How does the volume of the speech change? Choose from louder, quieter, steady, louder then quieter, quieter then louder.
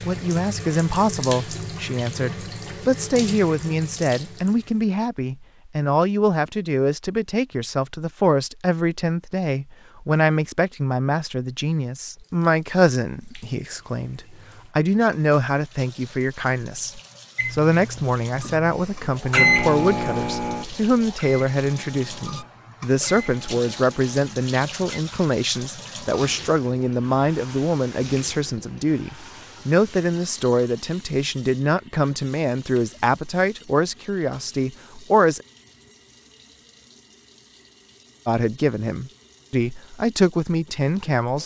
steady.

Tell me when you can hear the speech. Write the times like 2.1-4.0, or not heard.
0.1-35.5, 38.2-41.4.